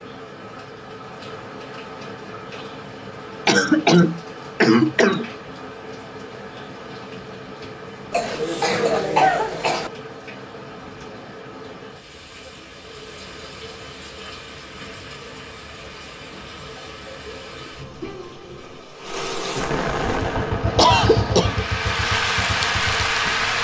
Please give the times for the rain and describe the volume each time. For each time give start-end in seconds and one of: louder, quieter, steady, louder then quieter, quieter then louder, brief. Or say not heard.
0.0-23.5 louder.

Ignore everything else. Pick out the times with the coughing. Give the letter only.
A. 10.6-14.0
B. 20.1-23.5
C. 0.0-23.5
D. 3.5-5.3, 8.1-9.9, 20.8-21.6
D.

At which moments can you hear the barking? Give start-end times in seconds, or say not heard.
not heard.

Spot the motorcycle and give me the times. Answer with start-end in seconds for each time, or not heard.
20.1-23.5.